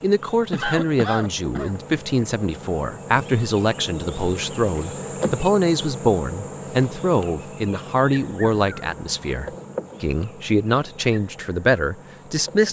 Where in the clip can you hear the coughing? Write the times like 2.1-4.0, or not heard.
0.5-1.8.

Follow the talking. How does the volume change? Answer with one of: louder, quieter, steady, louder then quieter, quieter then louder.
steady.